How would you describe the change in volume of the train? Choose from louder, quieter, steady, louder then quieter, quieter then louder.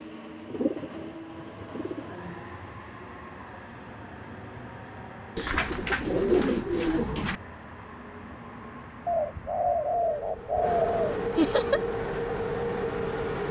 louder.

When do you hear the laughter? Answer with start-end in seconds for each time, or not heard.
11.3-11.8.